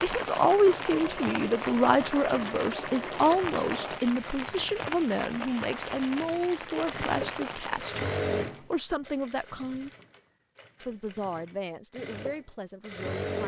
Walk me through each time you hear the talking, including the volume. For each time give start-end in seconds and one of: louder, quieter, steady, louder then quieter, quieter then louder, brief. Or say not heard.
0.0-9.9 quieter
10.8-13.4 brief.